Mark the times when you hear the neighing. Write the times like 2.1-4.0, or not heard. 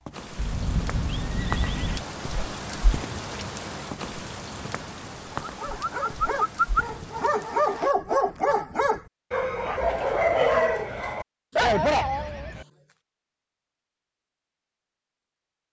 0.3-2.0, 11.6-12.7.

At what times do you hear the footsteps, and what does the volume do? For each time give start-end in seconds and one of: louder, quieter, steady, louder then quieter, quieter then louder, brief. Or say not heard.
not heard.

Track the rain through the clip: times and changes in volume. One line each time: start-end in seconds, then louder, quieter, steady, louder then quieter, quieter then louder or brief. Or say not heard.
0.0-8.0 quieter.